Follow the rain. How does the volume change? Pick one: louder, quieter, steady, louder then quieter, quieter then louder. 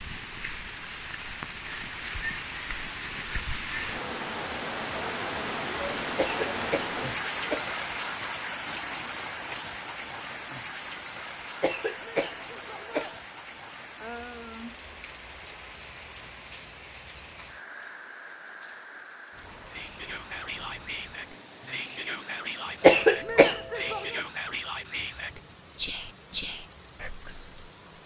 quieter.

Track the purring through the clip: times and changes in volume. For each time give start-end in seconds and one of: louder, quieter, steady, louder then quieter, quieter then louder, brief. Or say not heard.
not heard.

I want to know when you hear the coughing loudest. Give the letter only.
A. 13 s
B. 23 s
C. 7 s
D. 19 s
B.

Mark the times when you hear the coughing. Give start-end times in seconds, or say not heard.
6.2-7.8, 11.6-13.2, 22.8-24.2.